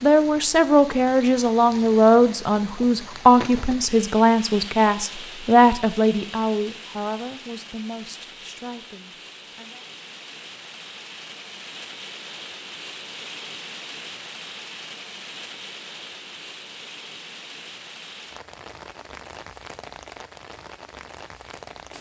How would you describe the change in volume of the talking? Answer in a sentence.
The volume of the talking goes down.